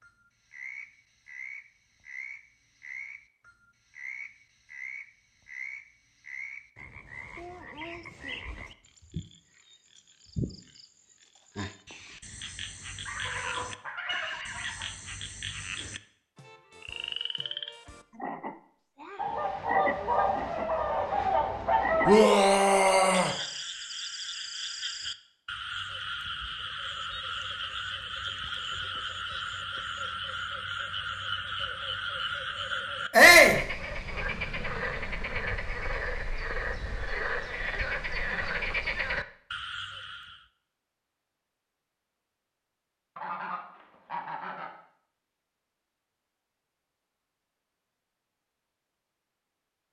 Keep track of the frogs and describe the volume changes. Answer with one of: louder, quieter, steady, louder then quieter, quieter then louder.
louder.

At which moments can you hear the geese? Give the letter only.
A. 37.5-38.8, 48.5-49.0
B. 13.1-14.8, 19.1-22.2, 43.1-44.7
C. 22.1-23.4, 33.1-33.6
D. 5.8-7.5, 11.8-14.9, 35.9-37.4
B.